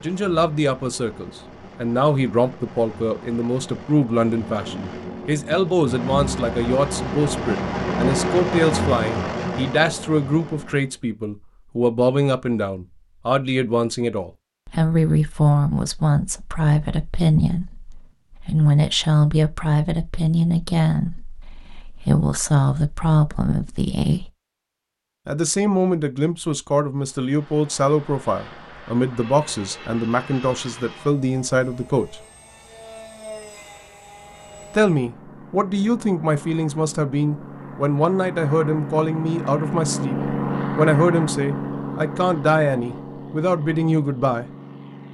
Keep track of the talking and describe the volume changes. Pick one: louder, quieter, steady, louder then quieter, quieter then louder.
steady.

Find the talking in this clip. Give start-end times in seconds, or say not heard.
0.0-24.3, 25.2-32.2, 34.8-44.5.